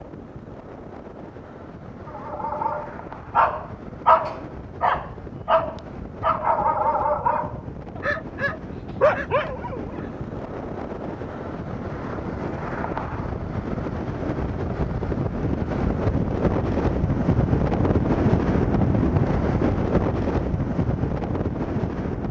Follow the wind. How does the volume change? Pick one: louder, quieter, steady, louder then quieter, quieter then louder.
louder.